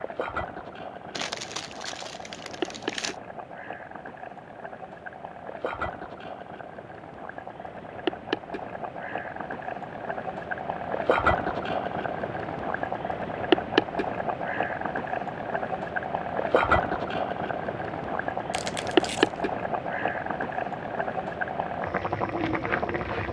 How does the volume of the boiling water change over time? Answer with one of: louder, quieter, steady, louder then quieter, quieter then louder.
louder.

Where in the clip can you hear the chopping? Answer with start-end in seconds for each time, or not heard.
not heard.